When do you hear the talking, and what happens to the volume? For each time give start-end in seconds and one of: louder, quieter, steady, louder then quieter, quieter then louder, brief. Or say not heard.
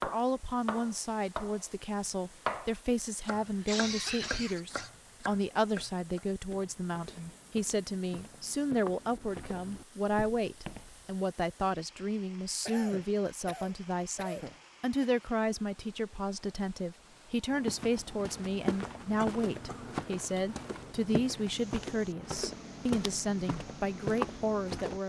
0.0-25.0 steady.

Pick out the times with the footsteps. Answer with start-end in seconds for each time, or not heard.
6.5-11.2, 17.5-25.0.